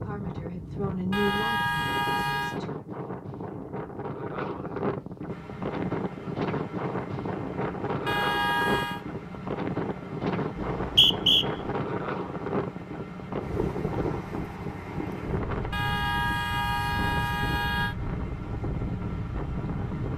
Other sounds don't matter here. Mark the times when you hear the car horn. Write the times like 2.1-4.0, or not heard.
1.1-2.6, 8.1-9.0, 15.7-17.9.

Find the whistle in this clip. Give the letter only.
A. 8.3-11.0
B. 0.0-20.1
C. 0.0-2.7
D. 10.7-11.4
D.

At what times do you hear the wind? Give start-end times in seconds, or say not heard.
0.0-20.1.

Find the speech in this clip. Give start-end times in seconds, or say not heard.
0.0-2.7.